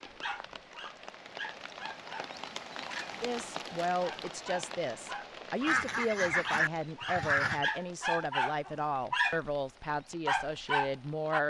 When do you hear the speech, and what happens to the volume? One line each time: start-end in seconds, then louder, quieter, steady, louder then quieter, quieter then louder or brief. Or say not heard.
3.1-11.4 steady.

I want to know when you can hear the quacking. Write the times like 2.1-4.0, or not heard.
5.7-7.6.